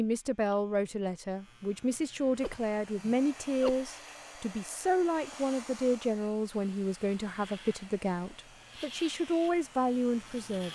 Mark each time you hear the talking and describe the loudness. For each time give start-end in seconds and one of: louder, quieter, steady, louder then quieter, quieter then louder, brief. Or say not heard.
0.0-10.6 steady.